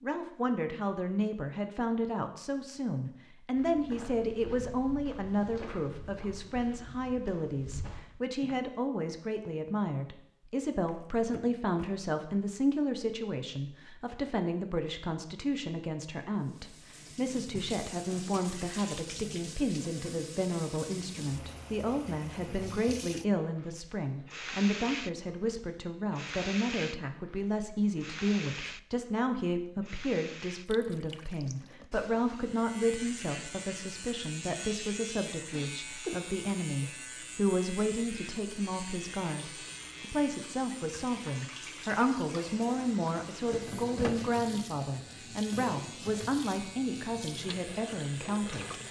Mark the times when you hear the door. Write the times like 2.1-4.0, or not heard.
10.8-11.9, 43.0-44.5.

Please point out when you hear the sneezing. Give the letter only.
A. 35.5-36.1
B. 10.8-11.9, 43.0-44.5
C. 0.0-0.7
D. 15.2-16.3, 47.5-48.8
A.